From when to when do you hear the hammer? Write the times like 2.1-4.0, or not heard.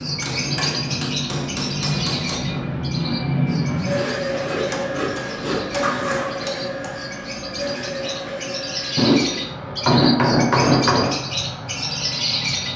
0.2-2.5, 4.7-7.0, 8.9-11.2.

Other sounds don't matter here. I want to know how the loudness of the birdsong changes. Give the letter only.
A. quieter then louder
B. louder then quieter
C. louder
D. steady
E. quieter
A.